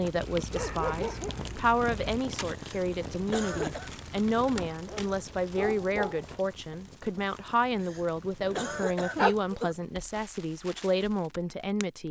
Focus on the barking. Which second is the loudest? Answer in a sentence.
The volume of the barking peaks at 9 seconds.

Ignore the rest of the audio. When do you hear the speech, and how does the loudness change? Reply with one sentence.
You can hear the speech from 0.0 to 12.0 s, at a steady volume.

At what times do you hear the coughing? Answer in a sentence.
The coughing can be heard from 2.5 to 3.9 s and from 7.8 to 9.8 s.